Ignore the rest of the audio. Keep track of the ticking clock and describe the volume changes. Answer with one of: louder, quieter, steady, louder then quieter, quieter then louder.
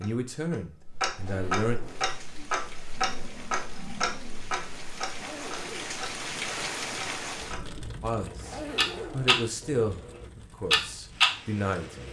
quieter then louder.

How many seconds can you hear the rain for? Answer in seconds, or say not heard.
10 s.